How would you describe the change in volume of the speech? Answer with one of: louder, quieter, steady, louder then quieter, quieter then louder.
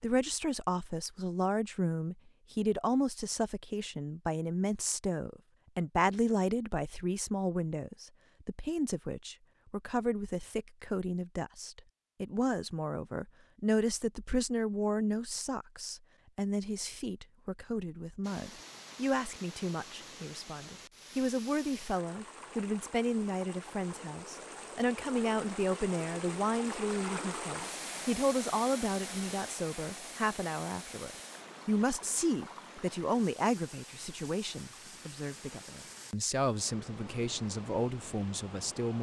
steady.